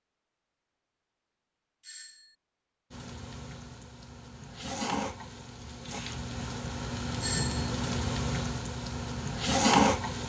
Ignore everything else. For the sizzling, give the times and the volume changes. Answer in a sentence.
The sizzling can be heard from 2.9 to 10.2 s, getting louder.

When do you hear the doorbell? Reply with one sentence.
You can hear the doorbell from 1.8 to 2.4 s and from 7.2 to 7.7 s.